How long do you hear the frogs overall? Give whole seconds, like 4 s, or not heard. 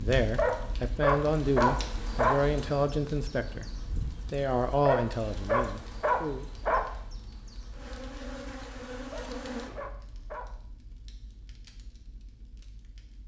not heard.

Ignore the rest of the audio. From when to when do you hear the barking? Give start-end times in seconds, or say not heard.
0.3-2.4, 4.8-6.9, 9.1-10.5.